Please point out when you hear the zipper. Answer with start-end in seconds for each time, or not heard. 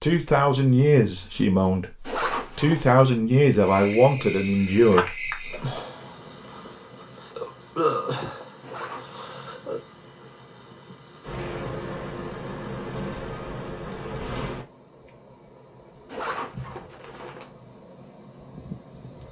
2.0-3.0, 8.6-9.2, 16.1-17.5.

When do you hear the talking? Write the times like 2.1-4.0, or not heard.
0.0-5.8.